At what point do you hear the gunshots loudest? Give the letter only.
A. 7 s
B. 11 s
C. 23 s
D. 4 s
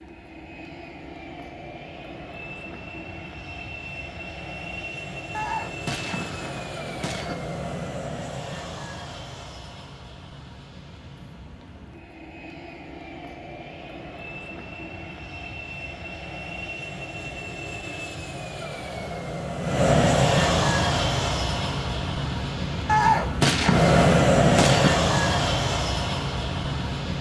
C.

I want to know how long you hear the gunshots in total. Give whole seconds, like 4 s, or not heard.
4 s.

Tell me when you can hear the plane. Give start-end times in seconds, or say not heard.
0.0-27.1.